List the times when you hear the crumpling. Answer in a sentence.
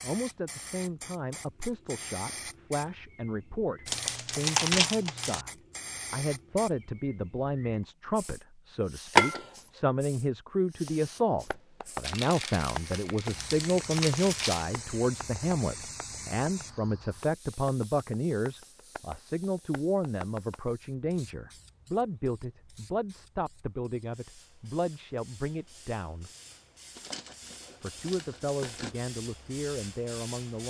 The crumpling can be heard from 3.9 to 5.5 s, from 12.0 to 14.7 s and from 26.9 to 28.9 s.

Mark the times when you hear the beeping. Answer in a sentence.
The beeping can't be heard in this clip.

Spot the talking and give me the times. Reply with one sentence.
You can hear the talking from 0.0 to 26.3 s and from 27.8 to 30.6 s.